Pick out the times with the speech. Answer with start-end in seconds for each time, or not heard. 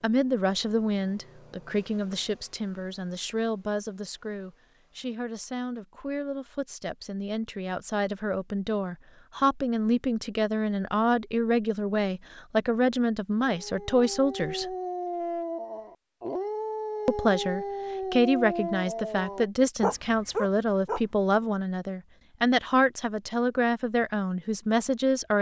0.0-14.8, 17.1-25.3.